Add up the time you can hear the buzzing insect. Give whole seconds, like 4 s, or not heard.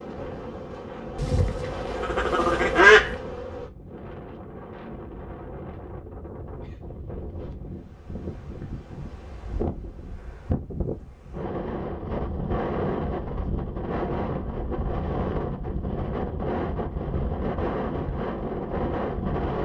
4 s.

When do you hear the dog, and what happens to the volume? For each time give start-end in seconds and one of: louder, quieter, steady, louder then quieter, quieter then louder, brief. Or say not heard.
not heard.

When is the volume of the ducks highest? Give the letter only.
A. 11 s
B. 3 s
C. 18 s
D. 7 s
B.